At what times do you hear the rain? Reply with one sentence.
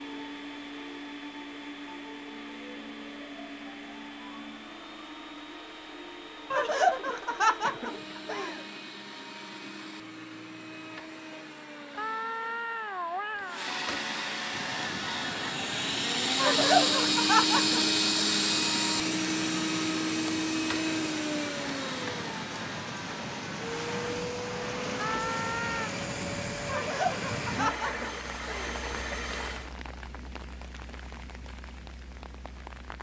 The rain can be heard from 14.4 to 32.9 s.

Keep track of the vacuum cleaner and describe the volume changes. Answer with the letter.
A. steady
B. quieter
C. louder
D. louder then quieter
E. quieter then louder
D.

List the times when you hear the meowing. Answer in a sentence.
The meowing can be heard from 11.9 to 13.7 s and from 24.9 to 25.9 s.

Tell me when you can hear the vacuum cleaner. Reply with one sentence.
The vacuum cleaner can be heard from 0.0 to 29.7 s.